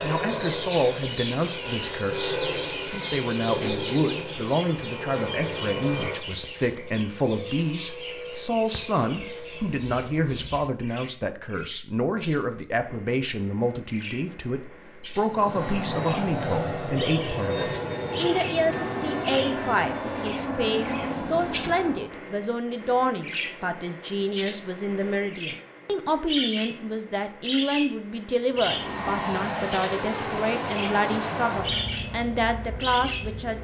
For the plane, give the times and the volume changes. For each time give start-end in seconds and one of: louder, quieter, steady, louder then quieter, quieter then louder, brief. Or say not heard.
0.0-10.6 quieter
15.2-22.2 steady
28.5-33.5 quieter.